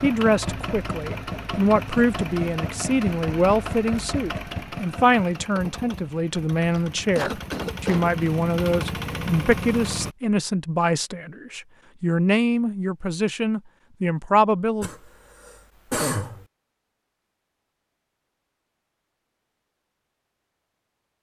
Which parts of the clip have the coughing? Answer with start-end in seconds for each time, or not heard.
6.8-8.1, 14.8-16.4.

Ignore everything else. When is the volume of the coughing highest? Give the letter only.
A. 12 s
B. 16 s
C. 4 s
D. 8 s
B.